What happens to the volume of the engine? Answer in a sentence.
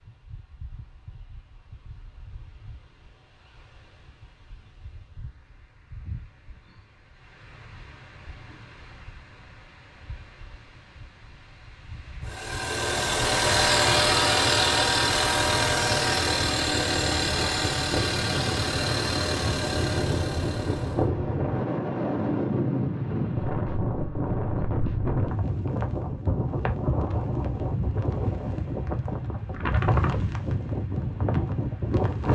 The loudness of the engine goes down.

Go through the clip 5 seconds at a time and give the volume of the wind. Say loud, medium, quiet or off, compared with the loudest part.
quiet, quiet, quiet, medium, loud, loud, loud.